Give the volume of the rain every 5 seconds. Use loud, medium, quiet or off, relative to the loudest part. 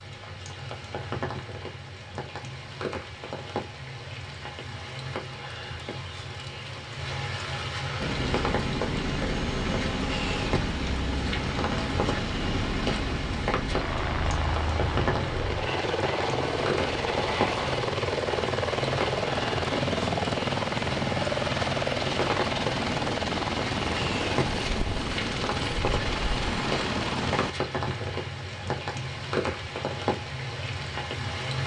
medium, loud, loud, loud, loud, loud, loud.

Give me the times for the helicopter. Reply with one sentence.
You can hear the helicopter from 8.0 to 27.6 s.